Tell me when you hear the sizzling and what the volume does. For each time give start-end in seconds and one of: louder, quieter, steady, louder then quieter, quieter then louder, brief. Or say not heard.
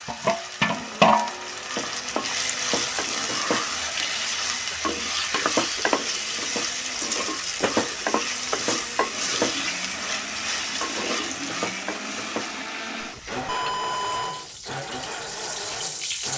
0.0-16.3 quieter.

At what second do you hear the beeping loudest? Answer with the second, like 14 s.
14 s.